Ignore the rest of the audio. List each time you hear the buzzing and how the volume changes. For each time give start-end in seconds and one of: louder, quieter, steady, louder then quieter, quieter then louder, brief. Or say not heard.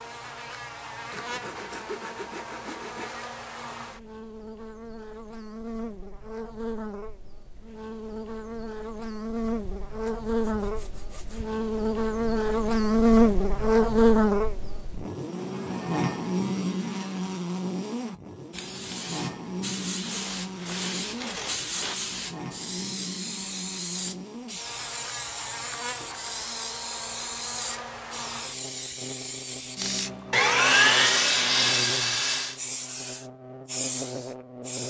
0.0-34.8 louder then quieter.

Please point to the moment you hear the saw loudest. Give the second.
31 s.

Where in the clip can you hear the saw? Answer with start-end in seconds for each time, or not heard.
1.1-3.2, 9.6-11.4, 20.1-21.9, 30.3-32.6.